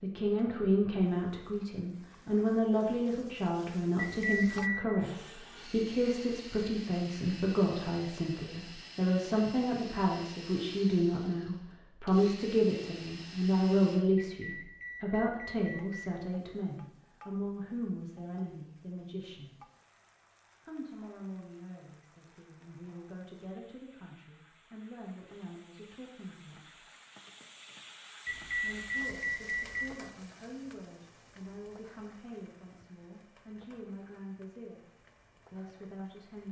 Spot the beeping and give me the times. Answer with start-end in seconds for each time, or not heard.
4.0-4.8, 14.2-16.1, 28.2-29.9.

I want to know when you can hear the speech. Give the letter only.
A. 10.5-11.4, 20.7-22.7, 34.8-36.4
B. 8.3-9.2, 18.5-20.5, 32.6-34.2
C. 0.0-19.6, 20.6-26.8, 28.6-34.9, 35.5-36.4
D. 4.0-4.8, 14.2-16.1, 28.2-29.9
C.